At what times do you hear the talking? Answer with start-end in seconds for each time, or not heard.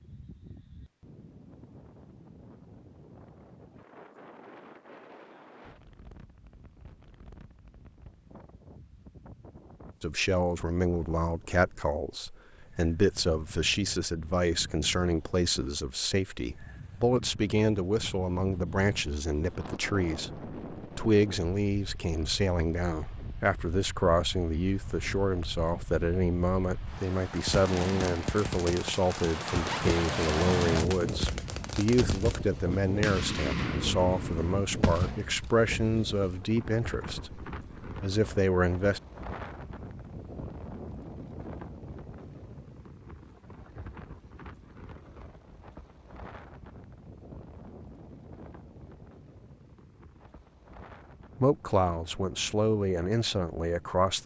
10.0-39.0, 51.4-54.2.